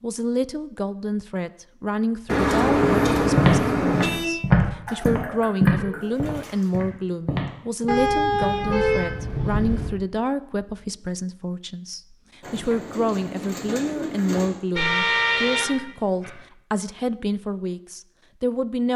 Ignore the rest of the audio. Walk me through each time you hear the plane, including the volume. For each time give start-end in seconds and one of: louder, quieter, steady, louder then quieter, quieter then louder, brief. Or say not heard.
not heard.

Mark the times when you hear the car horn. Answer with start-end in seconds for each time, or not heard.
2.2-4.3, 7.8-9.9, 14.8-16.4.